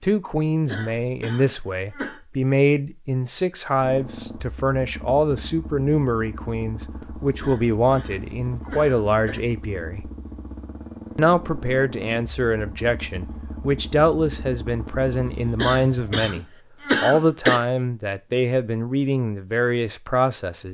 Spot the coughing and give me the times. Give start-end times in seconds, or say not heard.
0.7-2.2, 7.4-9.4, 15.6-17.6.